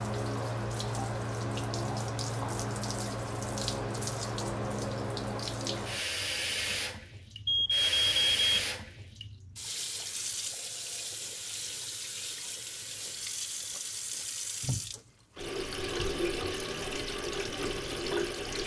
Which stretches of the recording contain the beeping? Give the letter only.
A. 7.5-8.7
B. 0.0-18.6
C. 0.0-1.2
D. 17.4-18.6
A.